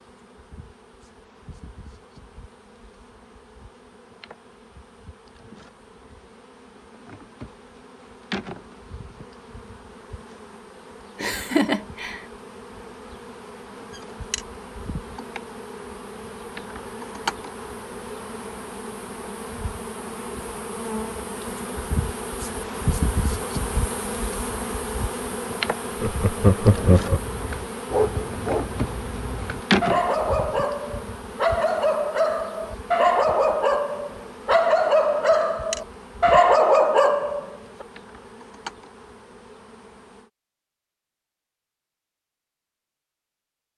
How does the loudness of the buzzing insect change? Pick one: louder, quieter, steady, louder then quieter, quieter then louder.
louder then quieter.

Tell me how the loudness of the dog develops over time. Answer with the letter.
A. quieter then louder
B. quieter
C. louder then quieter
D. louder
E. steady
D.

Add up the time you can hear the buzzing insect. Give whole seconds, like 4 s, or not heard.
40 s.